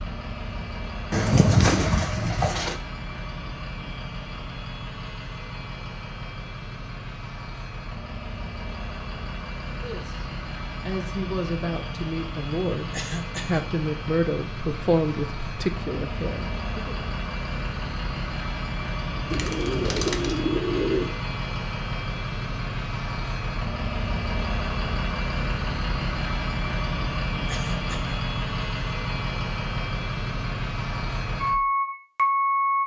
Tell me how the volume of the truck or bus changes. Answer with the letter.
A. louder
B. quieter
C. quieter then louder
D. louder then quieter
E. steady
A.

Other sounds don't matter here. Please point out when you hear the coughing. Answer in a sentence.
You can hear the coughing from 12.9 to 13.7 s and from 27.4 to 28.1 s.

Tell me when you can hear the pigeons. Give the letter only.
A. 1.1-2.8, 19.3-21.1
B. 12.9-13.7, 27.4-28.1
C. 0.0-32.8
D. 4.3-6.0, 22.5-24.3
A.